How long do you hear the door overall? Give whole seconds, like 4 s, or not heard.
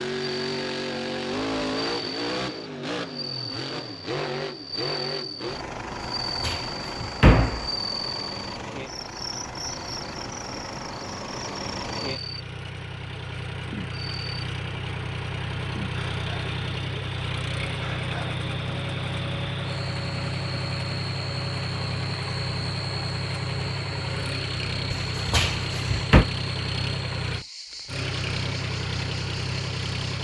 3 s.